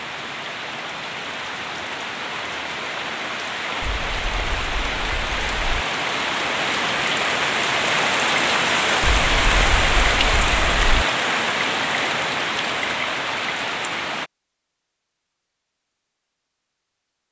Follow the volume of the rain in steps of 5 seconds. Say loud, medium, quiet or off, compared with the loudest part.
medium, loud, loud, off.